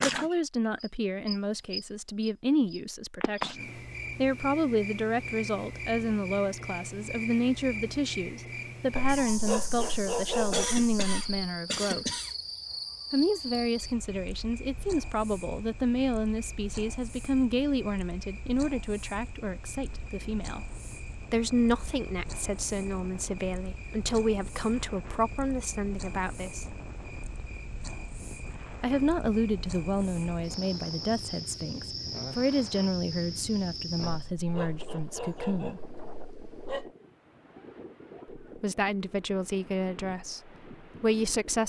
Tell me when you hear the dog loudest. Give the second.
10 s.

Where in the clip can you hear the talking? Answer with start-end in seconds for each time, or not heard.
0.0-12.1, 13.1-20.7, 21.3-26.8, 28.8-35.8, 38.4-41.6.